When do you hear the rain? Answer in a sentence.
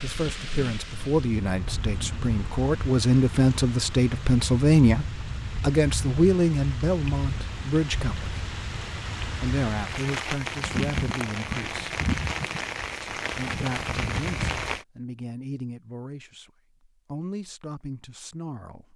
The rain can be heard from 0.0 to 14.8 s.